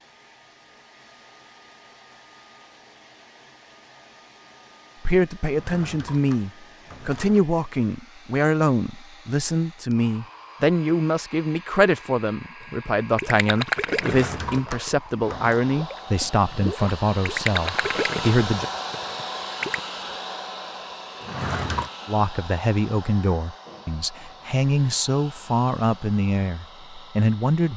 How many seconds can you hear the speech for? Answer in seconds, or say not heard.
19 s.